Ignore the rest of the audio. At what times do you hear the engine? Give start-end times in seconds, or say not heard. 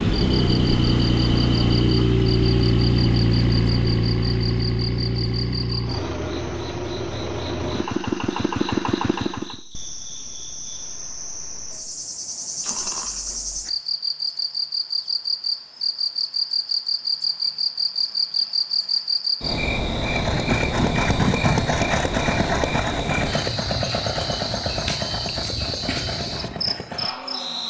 0.0-9.6, 19.9-27.6.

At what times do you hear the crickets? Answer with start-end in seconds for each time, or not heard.
0.1-27.6.